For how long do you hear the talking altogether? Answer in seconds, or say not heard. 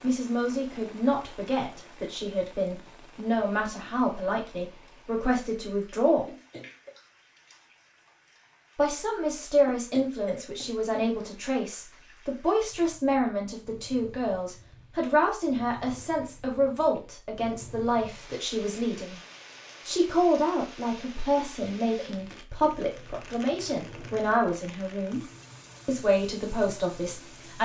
24 s.